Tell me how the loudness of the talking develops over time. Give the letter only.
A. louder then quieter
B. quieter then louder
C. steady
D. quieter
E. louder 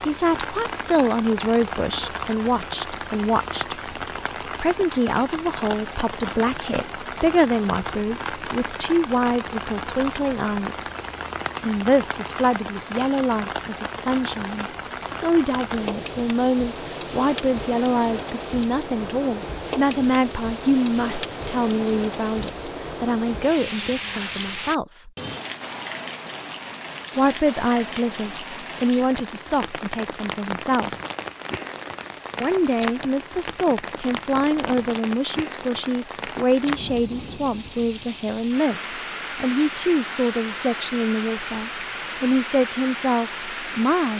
C.